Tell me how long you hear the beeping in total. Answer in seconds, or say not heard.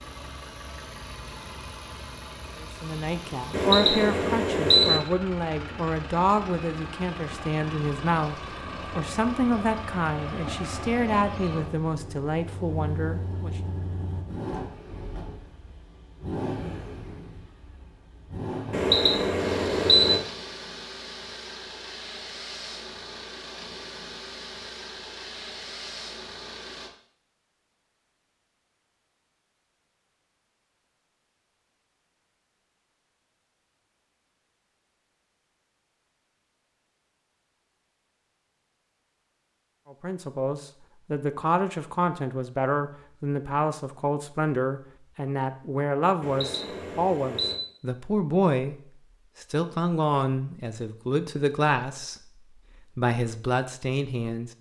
4 s.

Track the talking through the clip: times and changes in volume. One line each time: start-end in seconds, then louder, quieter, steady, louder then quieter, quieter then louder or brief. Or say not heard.
2.6-13.6 steady
39.9-48.8 steady
49.4-54.5 steady.